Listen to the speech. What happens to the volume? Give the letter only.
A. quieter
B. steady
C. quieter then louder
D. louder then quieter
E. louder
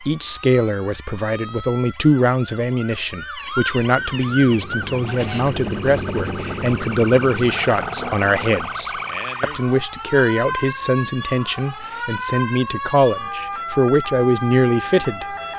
B.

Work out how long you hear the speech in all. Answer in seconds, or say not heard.
15 s.